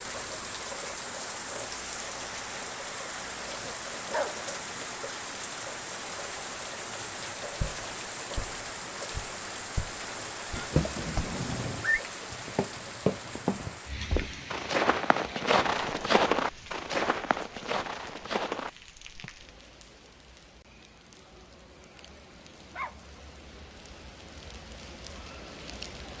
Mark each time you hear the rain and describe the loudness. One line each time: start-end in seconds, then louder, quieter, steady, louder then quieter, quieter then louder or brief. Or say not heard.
0.0-26.1 quieter.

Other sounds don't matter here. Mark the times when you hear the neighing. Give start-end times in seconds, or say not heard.
10.6-12.0.